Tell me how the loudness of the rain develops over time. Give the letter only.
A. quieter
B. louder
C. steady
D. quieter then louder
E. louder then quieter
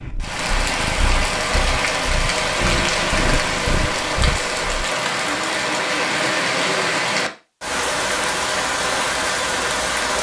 C.